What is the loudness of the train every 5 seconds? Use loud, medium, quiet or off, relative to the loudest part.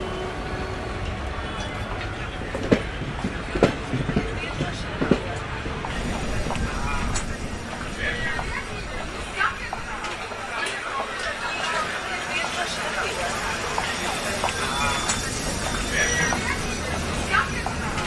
loud, loud, medium, loud.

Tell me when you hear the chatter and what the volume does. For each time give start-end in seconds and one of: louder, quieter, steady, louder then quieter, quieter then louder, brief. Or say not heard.
0.0-18.0 louder.